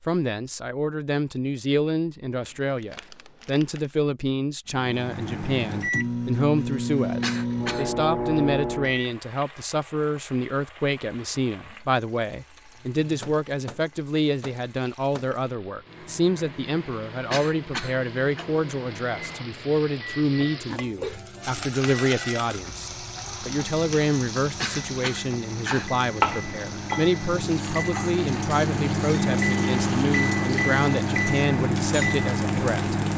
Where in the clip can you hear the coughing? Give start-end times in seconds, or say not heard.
7.2-7.9, 17.3-18.4, 24.6-25.9.